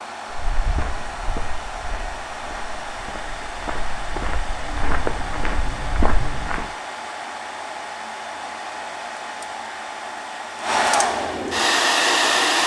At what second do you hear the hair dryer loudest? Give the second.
12 s.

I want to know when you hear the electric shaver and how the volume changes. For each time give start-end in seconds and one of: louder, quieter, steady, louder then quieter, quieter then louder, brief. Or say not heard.
not heard.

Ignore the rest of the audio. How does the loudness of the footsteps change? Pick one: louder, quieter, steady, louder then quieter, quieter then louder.
quieter then louder.